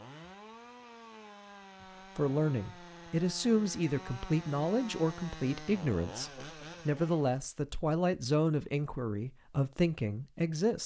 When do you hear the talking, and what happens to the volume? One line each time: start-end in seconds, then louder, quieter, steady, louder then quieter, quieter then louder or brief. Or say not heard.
2.1-10.8 steady.